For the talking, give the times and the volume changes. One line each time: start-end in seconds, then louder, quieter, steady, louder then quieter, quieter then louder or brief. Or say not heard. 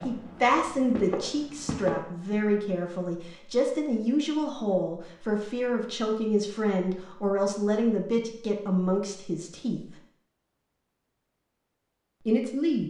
0.0-9.8 steady
12.2-12.8 brief.